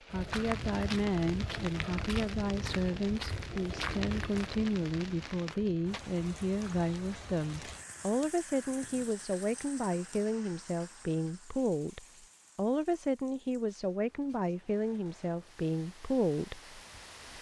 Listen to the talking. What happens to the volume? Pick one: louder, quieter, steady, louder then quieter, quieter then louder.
steady.